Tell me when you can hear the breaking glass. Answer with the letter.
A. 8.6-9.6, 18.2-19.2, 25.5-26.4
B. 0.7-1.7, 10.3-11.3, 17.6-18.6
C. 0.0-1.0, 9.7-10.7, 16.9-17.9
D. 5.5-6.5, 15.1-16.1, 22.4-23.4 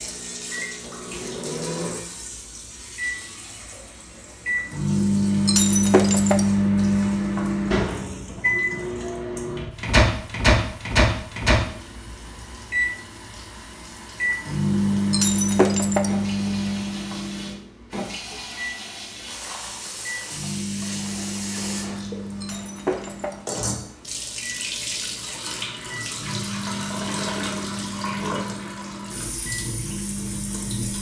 D.